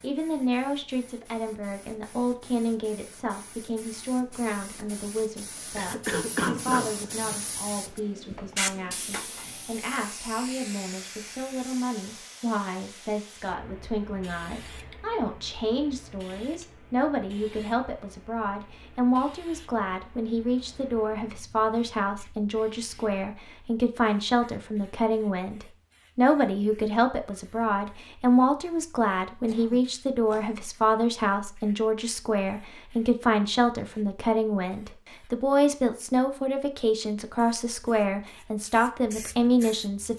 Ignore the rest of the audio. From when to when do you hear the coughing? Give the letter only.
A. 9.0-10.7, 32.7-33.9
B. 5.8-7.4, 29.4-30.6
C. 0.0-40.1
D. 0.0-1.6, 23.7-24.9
B.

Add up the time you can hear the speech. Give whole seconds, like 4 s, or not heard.
40 s.